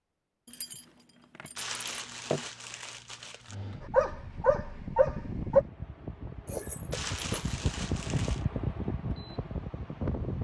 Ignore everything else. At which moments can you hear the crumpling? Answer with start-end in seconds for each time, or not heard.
1.6-3.5, 6.9-8.4.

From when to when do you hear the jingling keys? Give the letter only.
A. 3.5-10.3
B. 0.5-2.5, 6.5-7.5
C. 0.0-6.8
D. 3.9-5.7
B.